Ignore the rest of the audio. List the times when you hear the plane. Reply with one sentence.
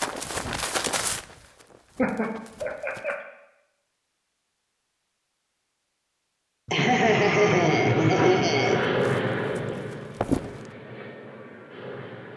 The plane can be heard from 6.8 to 12.3 s.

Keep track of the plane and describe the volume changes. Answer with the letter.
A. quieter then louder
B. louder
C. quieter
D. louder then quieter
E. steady
C.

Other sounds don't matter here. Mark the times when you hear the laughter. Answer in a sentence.
You can hear the laughter from 1.9 to 3.2 s and from 6.7 to 8.8 s.